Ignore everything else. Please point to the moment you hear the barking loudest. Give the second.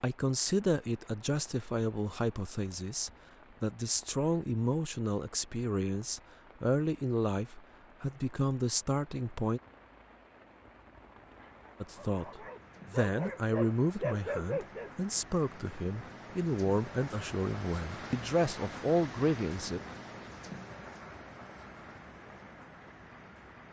14 s.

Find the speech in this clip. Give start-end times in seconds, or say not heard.
0.0-9.6, 11.8-19.8.